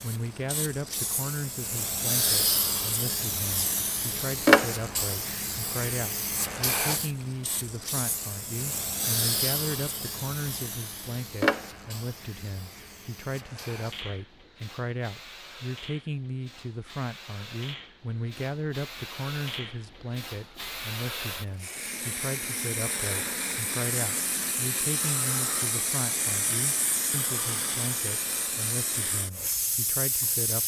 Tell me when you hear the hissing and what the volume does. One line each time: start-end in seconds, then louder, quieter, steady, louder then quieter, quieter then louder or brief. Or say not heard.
0.0-30.6 quieter then louder.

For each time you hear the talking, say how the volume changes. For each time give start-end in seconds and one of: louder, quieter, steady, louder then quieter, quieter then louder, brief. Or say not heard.
0.0-30.6 steady.